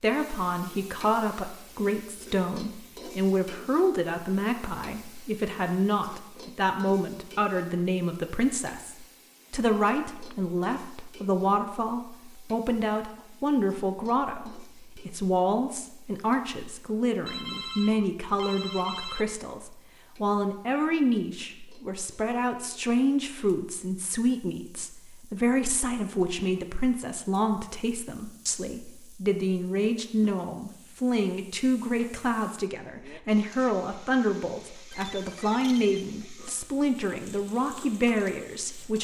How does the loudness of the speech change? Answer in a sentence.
The loudness of the speech stays about the same.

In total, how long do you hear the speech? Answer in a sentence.
The speech can be heard for 39 seconds in total.